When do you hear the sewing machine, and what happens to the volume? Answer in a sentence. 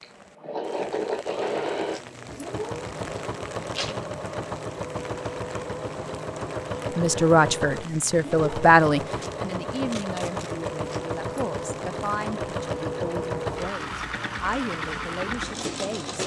The sewing machine can be heard from 0.0 to 16.2 s, at a steady volume.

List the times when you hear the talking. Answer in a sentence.
You can hear the talking from 7.0 to 16.2 s.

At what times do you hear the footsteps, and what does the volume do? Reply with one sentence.
The footsteps can't be heard in this clip.